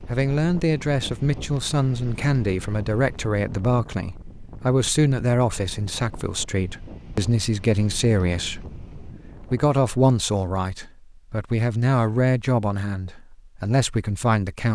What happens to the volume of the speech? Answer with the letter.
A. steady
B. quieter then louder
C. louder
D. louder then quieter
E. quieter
A.